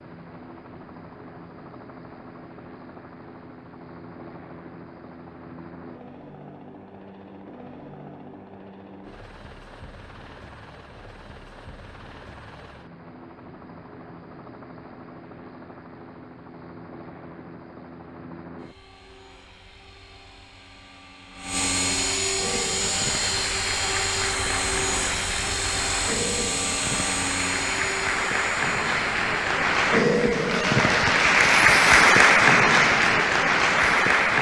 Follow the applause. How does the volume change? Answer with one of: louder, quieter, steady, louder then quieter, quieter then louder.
louder.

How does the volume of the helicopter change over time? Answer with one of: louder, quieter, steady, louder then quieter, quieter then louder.
louder.